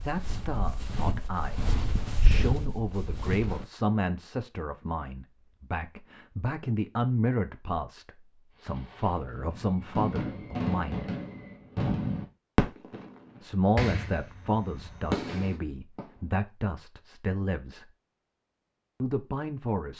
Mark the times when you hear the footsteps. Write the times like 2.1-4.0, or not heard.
0.0-3.6.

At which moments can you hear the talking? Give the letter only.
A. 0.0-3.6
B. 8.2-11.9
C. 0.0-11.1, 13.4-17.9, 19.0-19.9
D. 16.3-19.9
C.